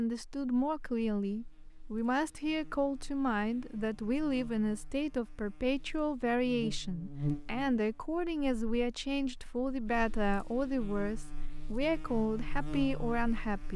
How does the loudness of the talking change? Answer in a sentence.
The volume of the talking stays about the same.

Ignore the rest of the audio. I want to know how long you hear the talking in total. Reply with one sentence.
You can hear the talking for 14 seconds altogether.